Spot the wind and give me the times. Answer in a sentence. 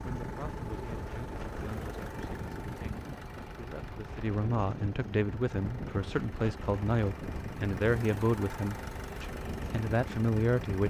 The wind can be heard from 0.0 to 10.8 s.